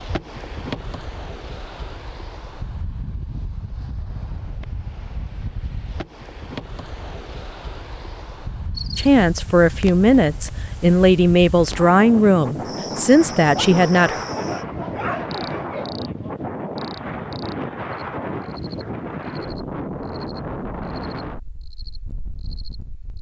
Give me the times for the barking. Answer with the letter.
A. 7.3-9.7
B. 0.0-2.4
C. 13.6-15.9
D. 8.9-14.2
C.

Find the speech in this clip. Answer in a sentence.
You can hear the speech from 8.9 to 14.2 s.